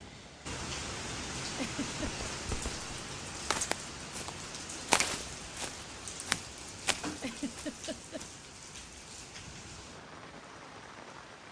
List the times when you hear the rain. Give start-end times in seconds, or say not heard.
0.0-11.4.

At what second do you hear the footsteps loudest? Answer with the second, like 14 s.
5 s.